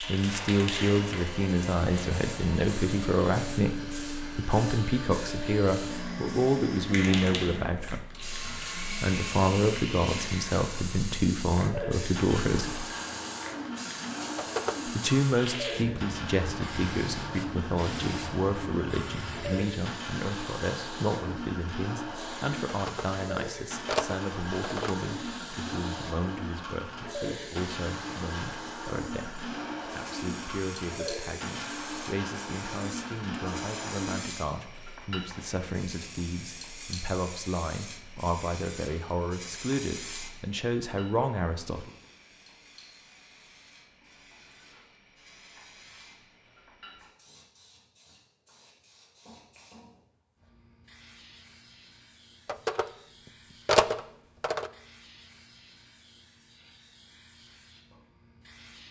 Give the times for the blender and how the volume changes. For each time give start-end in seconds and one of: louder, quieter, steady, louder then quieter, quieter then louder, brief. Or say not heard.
0.0-34.2 steady.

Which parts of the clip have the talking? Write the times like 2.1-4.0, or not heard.
0.0-12.8, 14.8-41.9.